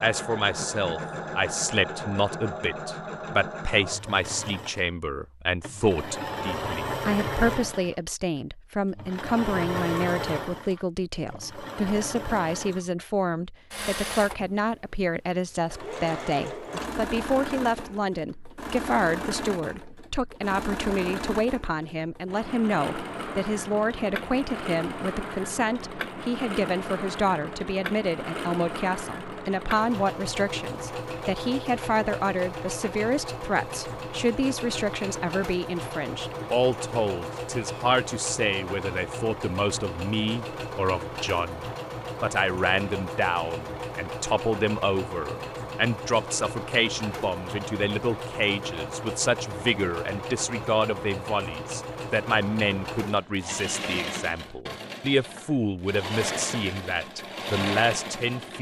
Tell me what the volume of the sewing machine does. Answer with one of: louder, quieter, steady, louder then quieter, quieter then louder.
steady.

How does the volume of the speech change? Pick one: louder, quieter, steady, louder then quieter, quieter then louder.
steady.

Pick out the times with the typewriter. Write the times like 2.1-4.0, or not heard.
not heard.